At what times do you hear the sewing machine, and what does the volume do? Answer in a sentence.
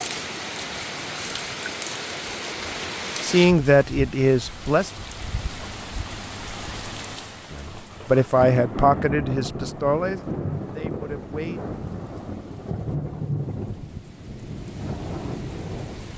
You can't hear the sewing machine here.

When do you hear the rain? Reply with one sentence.
The rain can be heard from 0.0 to 16.1 s.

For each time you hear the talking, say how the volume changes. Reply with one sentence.
The talking can be heard briefly from 3.2 to 4.9 s; and from 7.5 to 11.6 s, getting quieter.